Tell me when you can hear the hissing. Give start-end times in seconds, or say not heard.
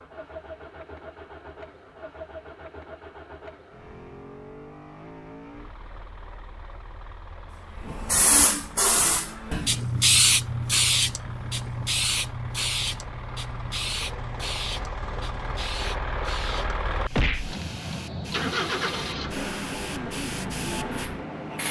7.8-21.6.